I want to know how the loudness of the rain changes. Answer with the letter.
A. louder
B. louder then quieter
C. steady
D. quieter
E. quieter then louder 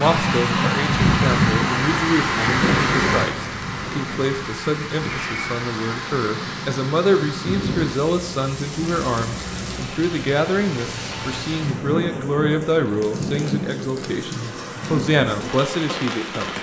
D.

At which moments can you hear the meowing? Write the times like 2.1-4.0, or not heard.
5.0-5.6.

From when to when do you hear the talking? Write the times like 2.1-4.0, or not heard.
0.0-16.5.